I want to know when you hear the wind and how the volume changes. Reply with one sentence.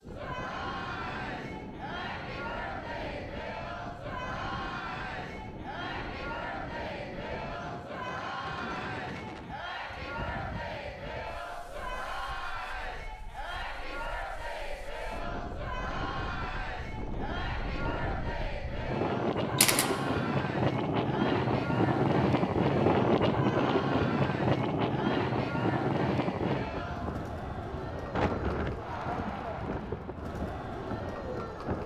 You can hear the wind from 0.0 to 31.8 s, getting louder then quieter.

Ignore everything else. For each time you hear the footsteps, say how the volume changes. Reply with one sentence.
You can't hear the footsteps here.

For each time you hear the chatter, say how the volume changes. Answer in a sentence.
The chatter can be heard from 0.0 to 31.8 s, at a steady volume.